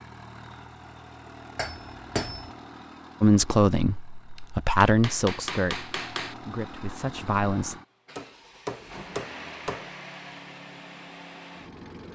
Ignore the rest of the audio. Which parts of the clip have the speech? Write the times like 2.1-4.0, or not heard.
3.2-7.8.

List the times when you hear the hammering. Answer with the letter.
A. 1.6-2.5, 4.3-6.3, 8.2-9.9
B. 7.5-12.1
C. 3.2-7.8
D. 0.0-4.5
A.